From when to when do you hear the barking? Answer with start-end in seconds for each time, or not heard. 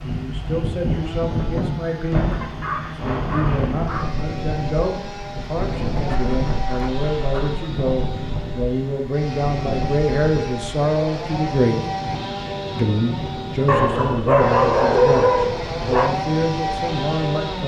2.3-4.2, 6.0-7.7, 13.7-16.1.